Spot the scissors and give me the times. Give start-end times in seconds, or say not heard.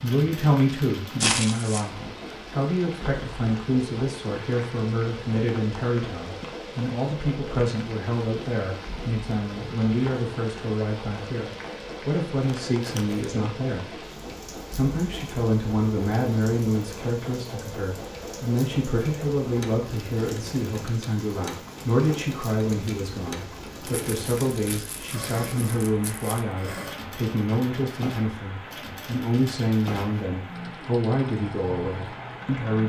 not heard.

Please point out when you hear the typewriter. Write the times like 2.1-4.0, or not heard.
not heard.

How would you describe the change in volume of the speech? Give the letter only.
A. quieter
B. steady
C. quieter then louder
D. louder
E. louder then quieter
B.